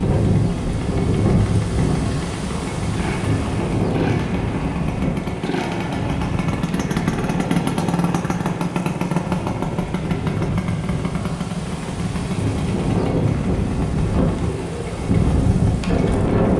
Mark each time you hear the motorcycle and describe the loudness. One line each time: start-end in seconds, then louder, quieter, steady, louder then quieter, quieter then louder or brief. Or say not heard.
0.0-16.5 louder then quieter.